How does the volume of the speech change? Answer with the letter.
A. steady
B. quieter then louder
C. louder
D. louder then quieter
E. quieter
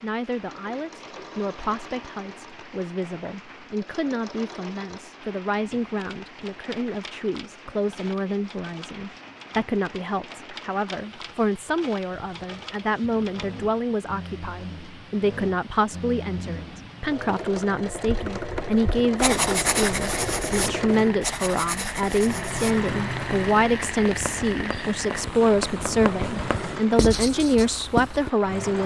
C.